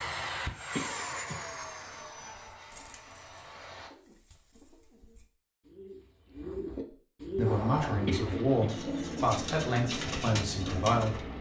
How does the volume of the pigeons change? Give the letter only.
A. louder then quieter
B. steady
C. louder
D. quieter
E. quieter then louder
C.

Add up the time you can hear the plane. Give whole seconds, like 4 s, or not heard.
8 s.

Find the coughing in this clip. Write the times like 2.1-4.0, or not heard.
0.8-1.4, 8.1-8.7.